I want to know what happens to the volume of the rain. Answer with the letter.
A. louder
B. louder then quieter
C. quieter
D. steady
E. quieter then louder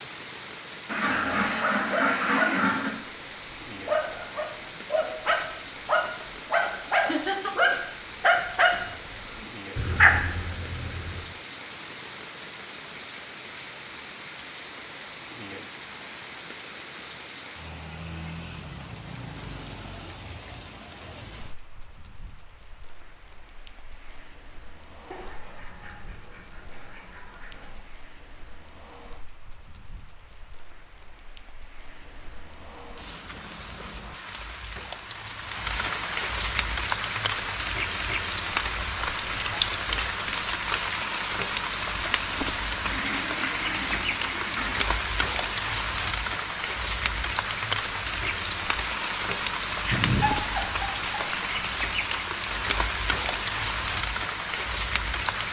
E.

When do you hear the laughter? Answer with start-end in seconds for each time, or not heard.
7.0-7.8, 49.8-51.5.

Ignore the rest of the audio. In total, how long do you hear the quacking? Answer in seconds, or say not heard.
7 s.